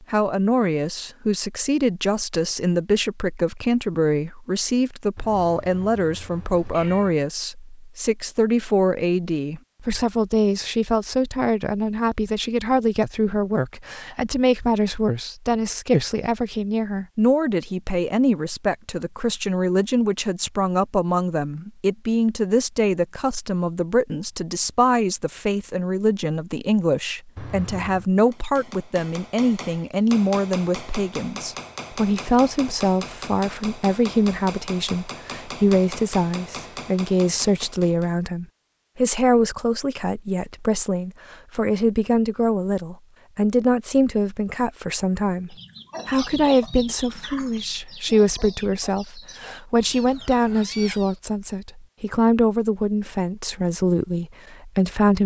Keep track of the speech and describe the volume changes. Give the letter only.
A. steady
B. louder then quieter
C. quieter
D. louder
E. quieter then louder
A.